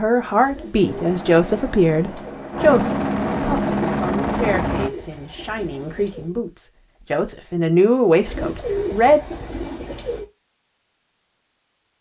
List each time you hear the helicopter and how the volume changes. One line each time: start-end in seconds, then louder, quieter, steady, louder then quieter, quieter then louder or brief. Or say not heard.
0.0-4.9 louder.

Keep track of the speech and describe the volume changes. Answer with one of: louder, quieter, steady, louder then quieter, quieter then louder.
quieter then louder.